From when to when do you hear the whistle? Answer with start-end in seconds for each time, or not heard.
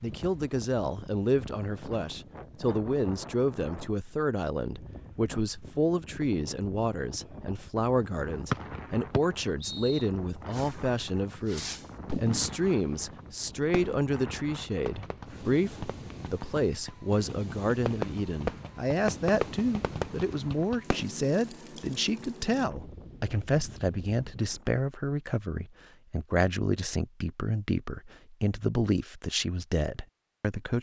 8.5-10.1.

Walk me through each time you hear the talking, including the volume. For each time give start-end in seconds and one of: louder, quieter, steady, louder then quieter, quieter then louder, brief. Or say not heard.
0.0-30.7 steady.